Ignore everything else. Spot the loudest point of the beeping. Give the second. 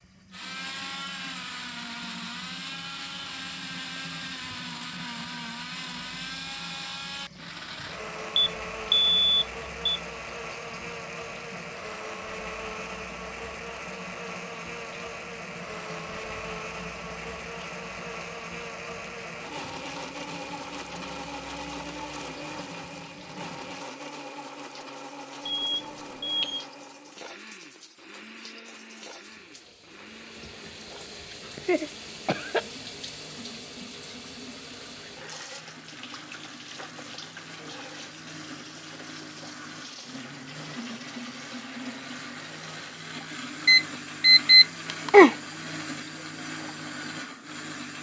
45 s.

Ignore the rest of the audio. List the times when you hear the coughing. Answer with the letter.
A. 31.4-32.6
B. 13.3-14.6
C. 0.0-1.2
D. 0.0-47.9
A.